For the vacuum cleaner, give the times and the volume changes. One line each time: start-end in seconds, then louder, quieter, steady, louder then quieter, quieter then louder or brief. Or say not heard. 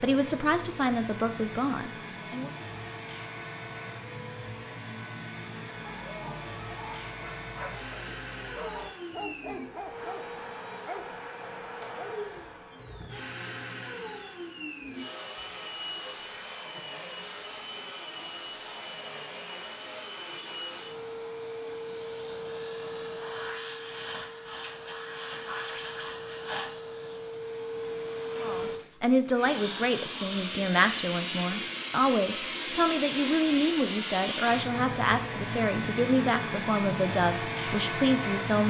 0.0-38.6 louder.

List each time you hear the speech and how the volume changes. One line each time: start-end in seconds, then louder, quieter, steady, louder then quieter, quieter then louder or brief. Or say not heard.
0.0-2.5 brief
28.4-38.6 steady.